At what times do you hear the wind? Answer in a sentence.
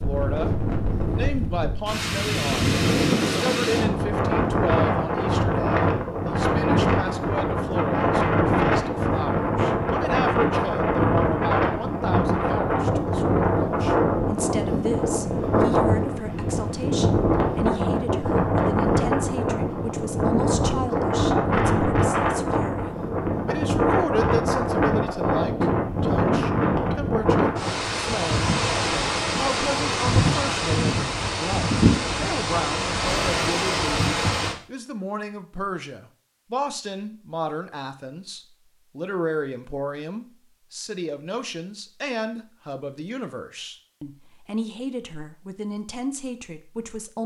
You can hear the wind from 0.0 to 34.5 s.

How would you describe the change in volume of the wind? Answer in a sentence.
The volume of the wind stays about the same.